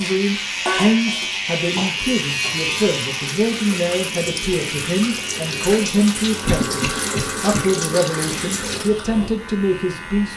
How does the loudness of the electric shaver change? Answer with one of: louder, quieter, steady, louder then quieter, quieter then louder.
quieter.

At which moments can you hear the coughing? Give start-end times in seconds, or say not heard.
1.8-2.8, 6.5-7.6.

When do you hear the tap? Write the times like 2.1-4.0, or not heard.
0.0-8.9.